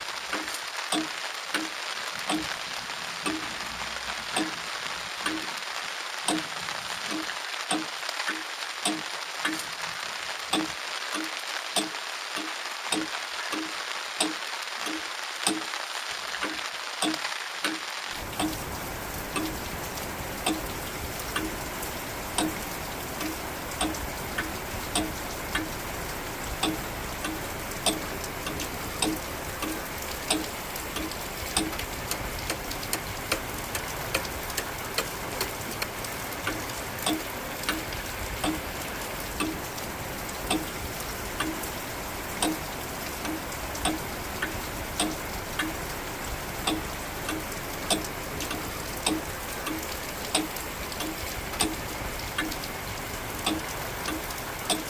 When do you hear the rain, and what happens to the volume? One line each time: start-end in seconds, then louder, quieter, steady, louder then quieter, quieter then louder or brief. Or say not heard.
0.0-54.8 steady.